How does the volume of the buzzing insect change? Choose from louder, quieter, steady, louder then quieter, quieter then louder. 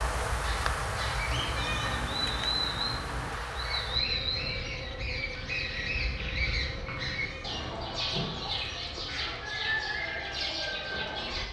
quieter.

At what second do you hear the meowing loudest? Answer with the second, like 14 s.
2 s.